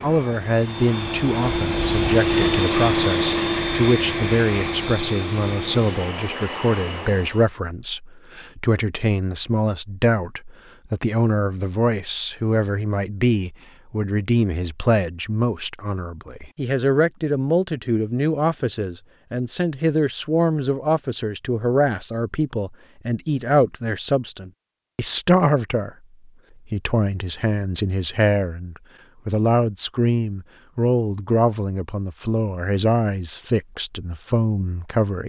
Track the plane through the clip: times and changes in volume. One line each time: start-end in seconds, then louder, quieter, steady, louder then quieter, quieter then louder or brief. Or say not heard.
0.0-7.5 louder then quieter.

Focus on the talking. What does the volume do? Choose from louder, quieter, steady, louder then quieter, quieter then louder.
steady.